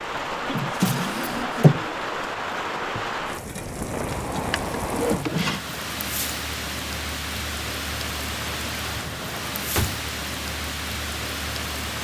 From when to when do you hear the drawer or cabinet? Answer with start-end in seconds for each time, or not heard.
0.5-1.8, 4.1-5.6, 8.9-10.1.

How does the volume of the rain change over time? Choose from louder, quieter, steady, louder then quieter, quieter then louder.
steady.